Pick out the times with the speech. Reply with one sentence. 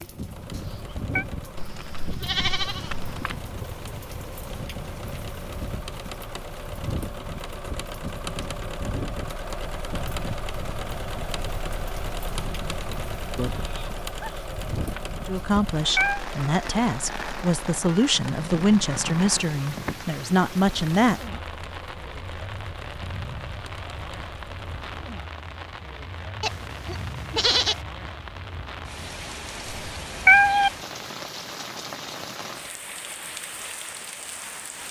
You can hear the speech from 15.2 to 21.4 s.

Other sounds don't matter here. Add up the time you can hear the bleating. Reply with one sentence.
The bleating can be heard for 5 seconds in total.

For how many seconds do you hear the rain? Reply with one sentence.
You can hear the rain for 35 seconds altogether.